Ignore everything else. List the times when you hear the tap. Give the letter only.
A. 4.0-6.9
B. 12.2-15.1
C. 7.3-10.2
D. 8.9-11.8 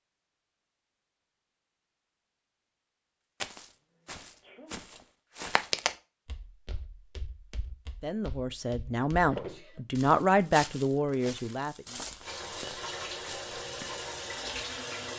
B.